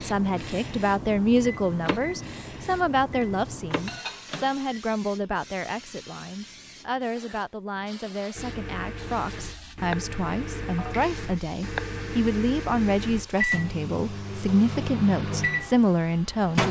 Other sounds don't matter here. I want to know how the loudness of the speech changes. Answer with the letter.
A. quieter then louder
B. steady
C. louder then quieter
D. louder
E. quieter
A.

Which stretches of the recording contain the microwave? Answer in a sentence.
The microwave can be heard from 0.0 to 4.8 s and from 8.3 to 16.6 s.